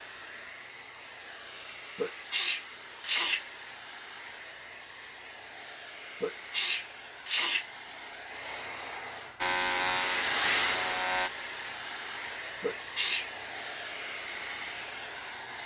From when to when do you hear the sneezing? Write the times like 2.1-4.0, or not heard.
1.9-3.5, 6.2-7.7, 12.6-13.2.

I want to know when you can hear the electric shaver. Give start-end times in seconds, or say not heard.
9.4-11.3.